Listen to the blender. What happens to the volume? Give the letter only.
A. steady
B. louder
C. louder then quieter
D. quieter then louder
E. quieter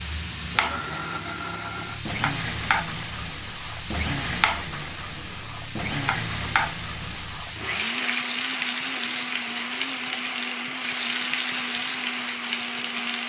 A.